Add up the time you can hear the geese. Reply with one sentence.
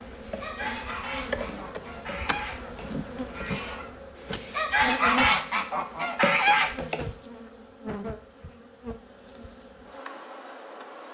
The geese can be heard for 7 seconds in total.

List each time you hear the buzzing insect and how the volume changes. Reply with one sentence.
The buzzing insect can be heard from 0.0 to 11.0 s, getting quieter.